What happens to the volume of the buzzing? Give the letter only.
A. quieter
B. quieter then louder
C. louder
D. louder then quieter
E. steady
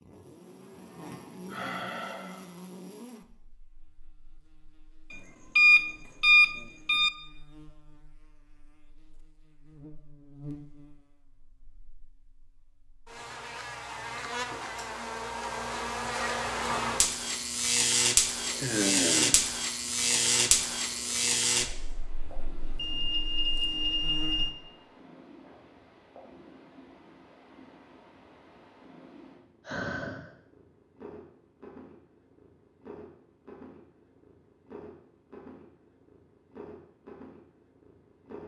B.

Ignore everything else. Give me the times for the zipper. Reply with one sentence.
The zipper can't be heard in this clip.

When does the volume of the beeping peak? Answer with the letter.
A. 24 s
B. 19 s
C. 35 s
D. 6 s
D.